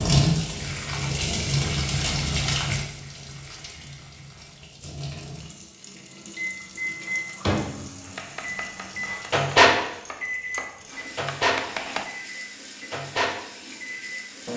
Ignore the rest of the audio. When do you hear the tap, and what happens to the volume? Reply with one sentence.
The tap can be heard from 0.0 to 14.5 s, getting quieter.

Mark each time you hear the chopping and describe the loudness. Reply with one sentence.
You can hear the chopping from 8.0 to 12.1 s, getting quieter then louder.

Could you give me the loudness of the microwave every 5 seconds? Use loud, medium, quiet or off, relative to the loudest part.
off, loud, medium.